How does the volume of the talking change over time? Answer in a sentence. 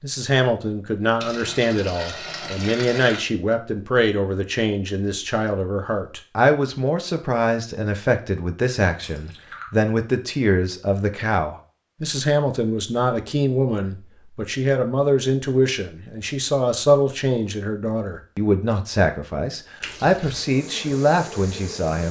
The volume of the talking stays about the same.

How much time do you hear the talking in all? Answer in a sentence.
The talking can be heard for 22 seconds in total.